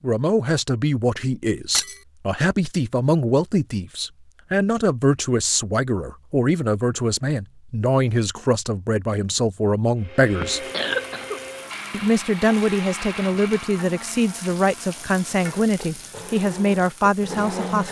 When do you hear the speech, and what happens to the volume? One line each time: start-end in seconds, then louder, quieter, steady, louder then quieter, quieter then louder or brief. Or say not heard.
0.0-10.7 steady
11.9-17.8 steady.